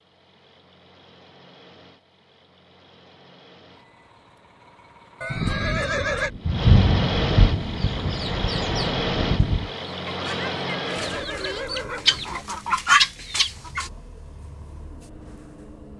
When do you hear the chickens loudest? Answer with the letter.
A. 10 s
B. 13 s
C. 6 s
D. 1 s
B.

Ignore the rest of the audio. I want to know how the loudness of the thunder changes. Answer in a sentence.
The volume of the thunder goes up, then down.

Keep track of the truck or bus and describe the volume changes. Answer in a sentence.
The loudness of the truck or bus goes up, then down.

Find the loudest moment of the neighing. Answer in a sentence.
The volume of the neighing peaks at 6 seconds.